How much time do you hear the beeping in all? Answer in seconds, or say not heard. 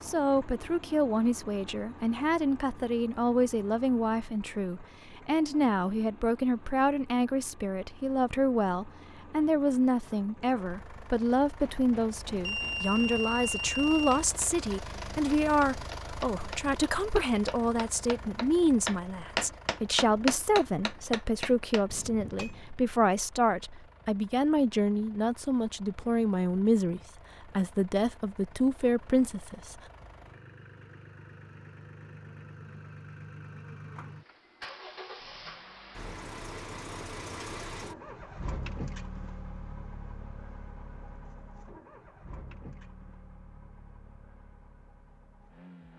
2 s.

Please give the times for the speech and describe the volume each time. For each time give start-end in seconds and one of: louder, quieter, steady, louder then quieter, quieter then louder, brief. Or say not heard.
0.0-29.8 steady.